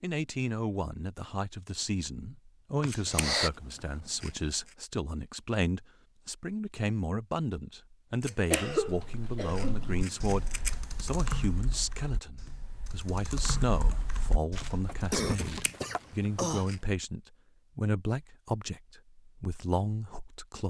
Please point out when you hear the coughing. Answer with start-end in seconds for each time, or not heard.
2.8-3.5, 8.5-9.8, 14.6-16.6.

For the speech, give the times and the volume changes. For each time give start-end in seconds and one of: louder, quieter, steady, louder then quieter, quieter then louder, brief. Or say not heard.
0.0-20.6 steady.